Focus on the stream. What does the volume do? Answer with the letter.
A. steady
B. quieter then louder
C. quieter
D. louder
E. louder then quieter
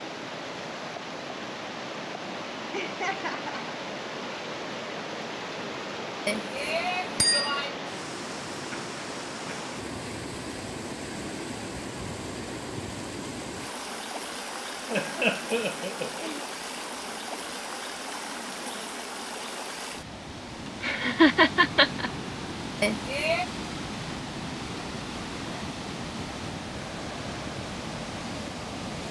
A.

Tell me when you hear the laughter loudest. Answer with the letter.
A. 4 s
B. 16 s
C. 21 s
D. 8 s
C.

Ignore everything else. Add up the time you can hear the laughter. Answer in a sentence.
You can hear the laughter for 4 seconds altogether.